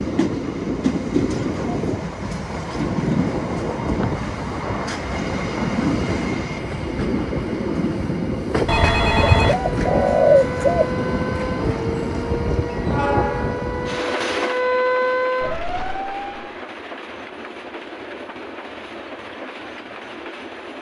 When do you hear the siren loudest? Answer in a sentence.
The volume of the siren peaks at 15 seconds.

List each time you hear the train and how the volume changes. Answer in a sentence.
You can hear the train from 0.0 to 20.7 s, getting quieter.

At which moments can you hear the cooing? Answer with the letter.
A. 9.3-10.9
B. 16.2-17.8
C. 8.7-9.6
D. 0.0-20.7
A.